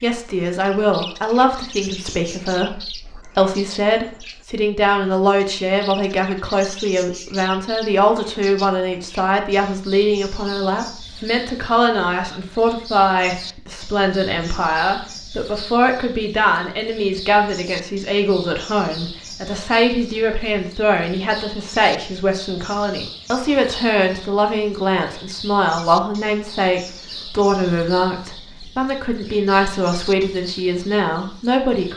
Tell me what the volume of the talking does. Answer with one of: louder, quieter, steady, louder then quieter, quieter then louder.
steady.